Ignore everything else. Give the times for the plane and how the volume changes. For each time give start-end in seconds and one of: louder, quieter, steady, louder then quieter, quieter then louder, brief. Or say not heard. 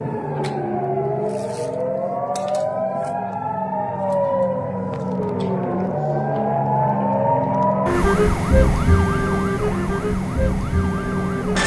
0.0-11.6 louder.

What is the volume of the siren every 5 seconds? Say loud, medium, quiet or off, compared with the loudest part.
loud, loud, medium.